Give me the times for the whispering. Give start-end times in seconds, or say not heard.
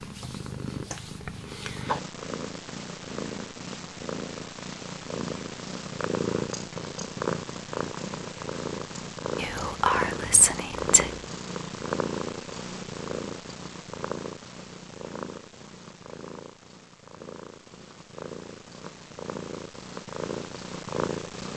9.3-11.2.